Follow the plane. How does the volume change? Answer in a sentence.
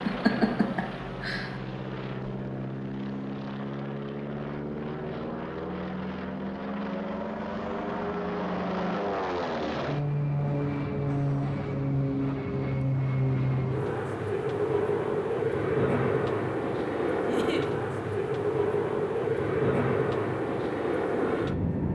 The loudness of the plane goes up.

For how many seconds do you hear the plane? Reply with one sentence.
The plane can be heard for 22 seconds in total.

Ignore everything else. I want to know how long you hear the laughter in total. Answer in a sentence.
The laughter can be heard for 2 seconds in total.